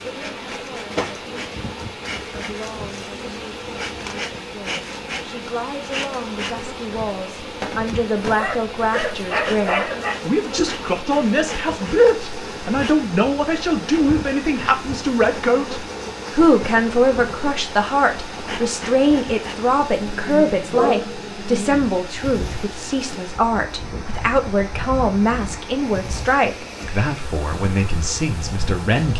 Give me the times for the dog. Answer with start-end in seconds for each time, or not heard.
8.2-10.2, 20.7-21.2.